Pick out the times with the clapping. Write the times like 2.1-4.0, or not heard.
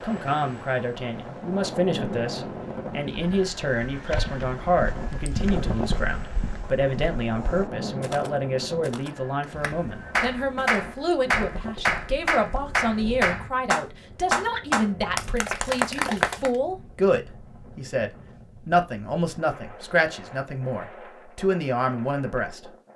9.6-16.5.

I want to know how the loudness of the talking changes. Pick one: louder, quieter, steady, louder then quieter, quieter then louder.
steady.